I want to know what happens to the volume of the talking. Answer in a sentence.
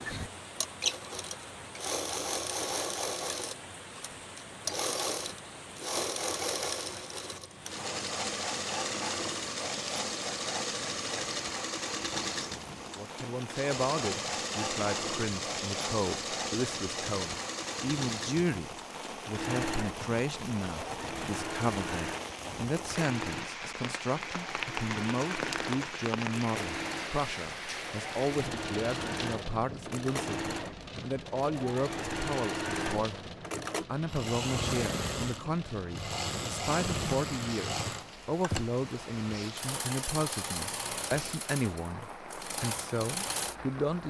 The volume of the talking stays about the same.